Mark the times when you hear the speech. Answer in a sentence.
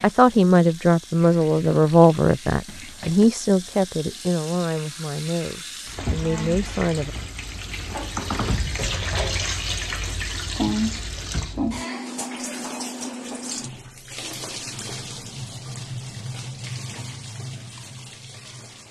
You can hear the speech from 0.0 to 7.1 s.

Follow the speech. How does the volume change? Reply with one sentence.
The loudness of the speech goes down.